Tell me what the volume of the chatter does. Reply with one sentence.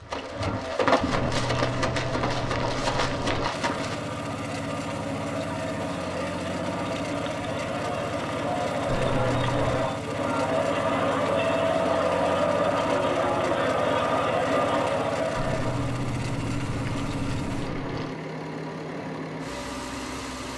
The volume of the chatter goes up.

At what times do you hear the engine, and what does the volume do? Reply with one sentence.
You can hear the engine from 3.5 to 20.5 s, at a steady volume.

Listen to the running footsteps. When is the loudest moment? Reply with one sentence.
The loudest moment of the running footsteps is at 1 second.